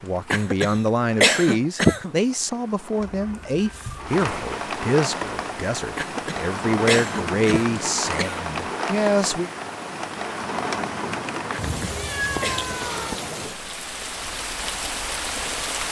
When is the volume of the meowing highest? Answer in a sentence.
The volume of the meowing peaks at 12 seconds.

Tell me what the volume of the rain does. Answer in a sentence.
The loudness of the rain goes up.